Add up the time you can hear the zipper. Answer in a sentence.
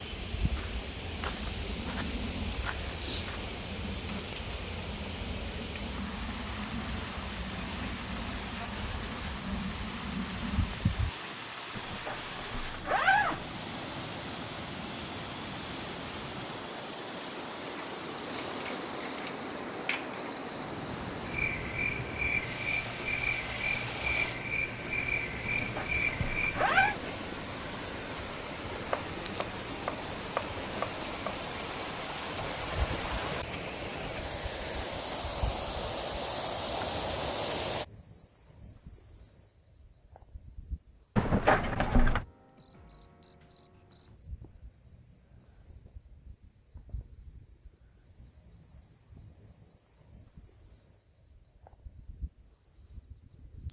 The zipper can be heard for 4 seconds in total.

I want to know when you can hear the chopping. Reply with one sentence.
You can hear the chopping from 28.9 to 31.4 s.